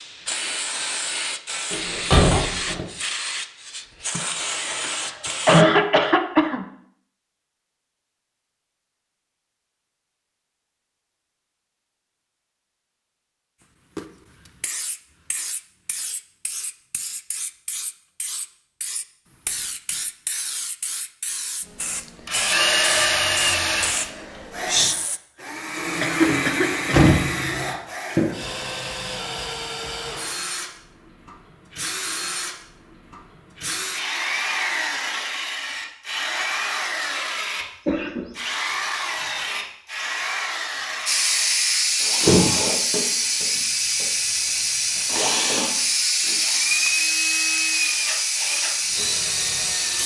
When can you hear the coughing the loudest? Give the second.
6 s.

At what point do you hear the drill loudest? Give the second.
23 s.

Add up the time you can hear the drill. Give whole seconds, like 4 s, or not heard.
28 s.